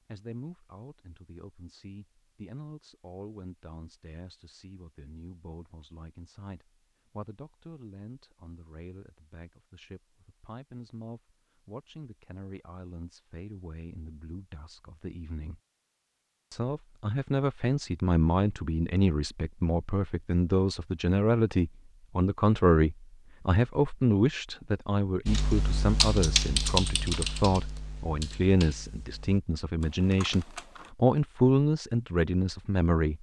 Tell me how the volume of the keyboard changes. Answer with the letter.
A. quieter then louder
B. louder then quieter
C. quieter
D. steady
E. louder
C.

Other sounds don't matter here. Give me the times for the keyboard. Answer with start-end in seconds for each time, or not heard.
25.2-30.9.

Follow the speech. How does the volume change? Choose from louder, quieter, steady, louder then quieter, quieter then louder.
louder.